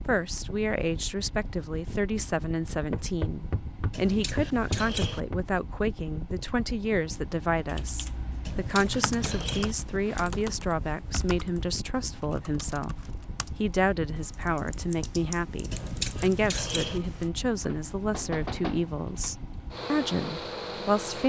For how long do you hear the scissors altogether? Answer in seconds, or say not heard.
4 s.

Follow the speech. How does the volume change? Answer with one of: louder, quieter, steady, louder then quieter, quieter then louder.
steady.